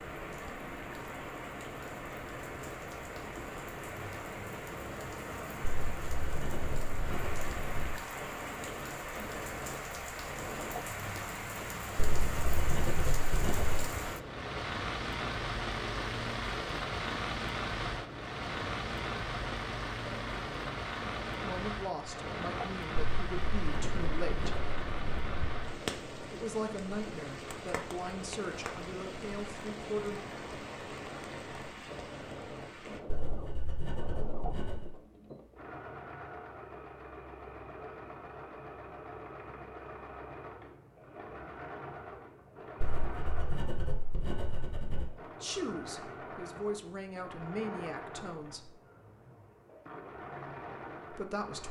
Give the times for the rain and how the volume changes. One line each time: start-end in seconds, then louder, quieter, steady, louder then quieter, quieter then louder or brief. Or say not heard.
0.0-33.0 louder then quieter.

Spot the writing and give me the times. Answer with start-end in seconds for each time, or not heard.
5.6-8.0, 11.9-13.9, 22.9-25.5, 33.0-34.9, 42.8-45.1.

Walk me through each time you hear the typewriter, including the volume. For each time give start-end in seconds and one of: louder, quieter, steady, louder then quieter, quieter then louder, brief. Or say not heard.
not heard.